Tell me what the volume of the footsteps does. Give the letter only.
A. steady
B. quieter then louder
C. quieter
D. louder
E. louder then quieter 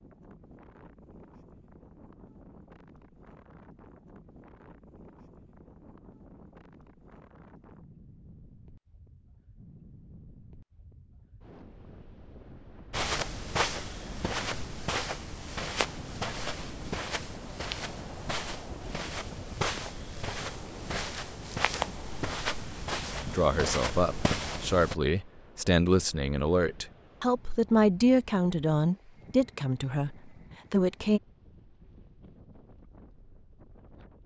A.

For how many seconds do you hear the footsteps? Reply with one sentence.
The footsteps can be heard for 12 seconds in total.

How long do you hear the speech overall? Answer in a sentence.
You can hear the speech for 8 seconds altogether.